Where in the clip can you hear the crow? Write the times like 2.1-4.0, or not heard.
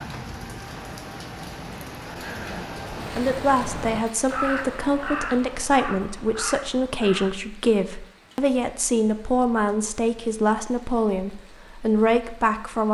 0.6-7.4.